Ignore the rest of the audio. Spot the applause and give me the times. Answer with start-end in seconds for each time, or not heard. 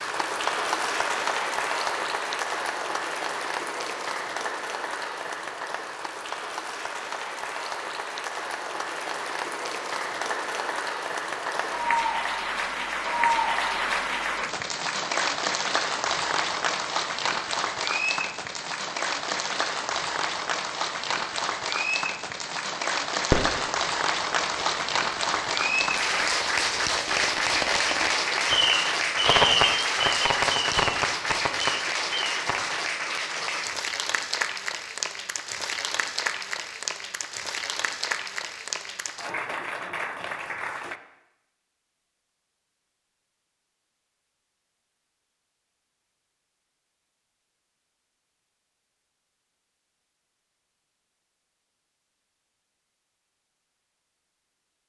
0.0-41.0.